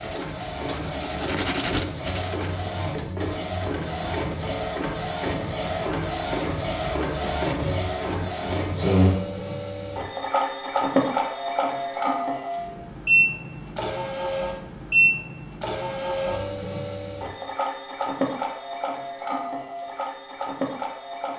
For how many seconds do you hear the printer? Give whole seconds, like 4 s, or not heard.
21 s.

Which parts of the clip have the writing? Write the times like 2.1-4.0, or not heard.
0.0-2.6.